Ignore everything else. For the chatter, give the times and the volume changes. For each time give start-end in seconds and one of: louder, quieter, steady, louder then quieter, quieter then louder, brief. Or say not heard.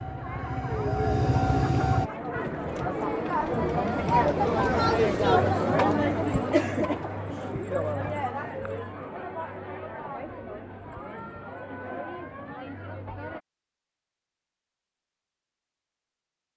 0.0-13.4 louder then quieter.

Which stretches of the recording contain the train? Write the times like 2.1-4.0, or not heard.
0.0-2.1.